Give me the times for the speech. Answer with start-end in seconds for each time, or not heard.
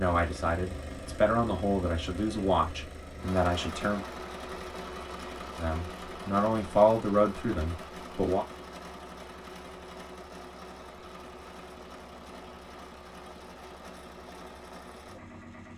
0.0-4.0, 5.5-8.4.